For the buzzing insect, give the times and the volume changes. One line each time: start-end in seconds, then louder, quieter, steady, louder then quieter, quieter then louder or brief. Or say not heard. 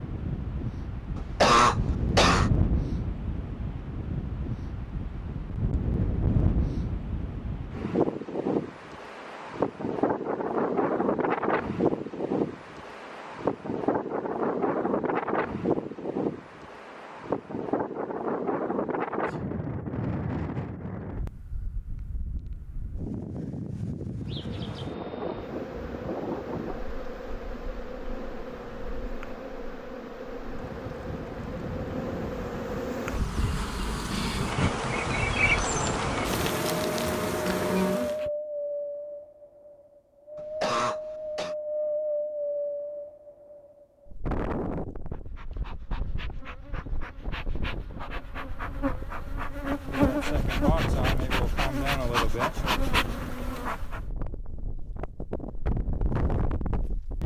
24.2-38.3 louder
45.1-54.0 louder.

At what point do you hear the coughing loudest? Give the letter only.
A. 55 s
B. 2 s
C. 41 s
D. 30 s
B.